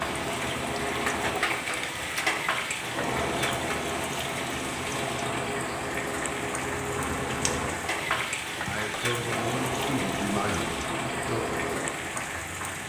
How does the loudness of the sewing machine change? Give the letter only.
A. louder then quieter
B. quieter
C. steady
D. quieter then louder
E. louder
C.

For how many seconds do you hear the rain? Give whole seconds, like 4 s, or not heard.
13 s.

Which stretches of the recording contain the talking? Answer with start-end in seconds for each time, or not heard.
8.7-11.4.